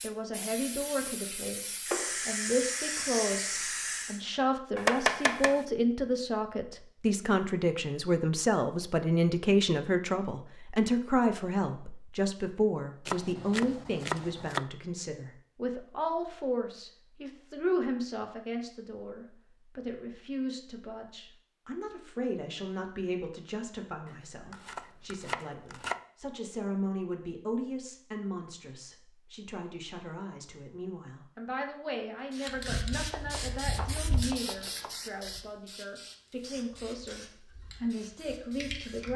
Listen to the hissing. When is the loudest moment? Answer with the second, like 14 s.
2 s.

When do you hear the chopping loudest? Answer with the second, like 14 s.
5 s.